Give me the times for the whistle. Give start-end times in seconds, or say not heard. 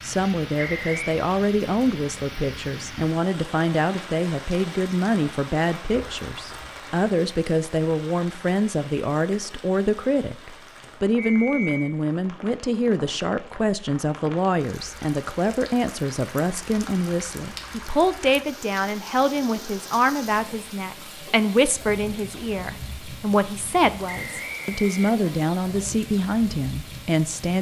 0.6-1.2, 11.2-11.9, 24.1-25.2.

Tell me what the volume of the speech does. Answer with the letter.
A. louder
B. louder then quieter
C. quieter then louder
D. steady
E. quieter
D.